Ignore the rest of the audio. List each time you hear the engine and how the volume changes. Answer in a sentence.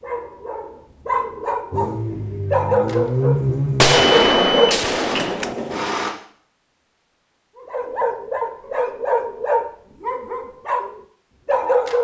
You can hear the engine from 1.7 to 6.1 s, getting louder then quieter.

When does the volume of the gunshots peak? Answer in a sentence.
The loudest moment of the gunshots is at 4 seconds.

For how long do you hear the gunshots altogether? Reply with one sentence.
You can hear the gunshots for 2 seconds altogether.